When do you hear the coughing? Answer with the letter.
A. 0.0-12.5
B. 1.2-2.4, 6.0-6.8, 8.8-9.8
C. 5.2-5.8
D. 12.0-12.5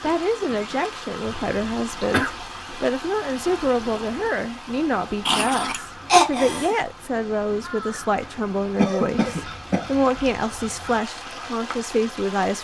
B.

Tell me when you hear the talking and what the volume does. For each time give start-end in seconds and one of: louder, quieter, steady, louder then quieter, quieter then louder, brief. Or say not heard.
0.0-12.5 steady.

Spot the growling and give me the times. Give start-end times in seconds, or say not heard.
5.2-5.8.